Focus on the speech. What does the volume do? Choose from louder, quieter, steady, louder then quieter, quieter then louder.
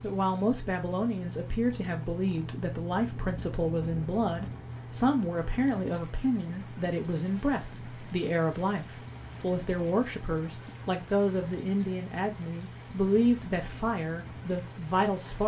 steady.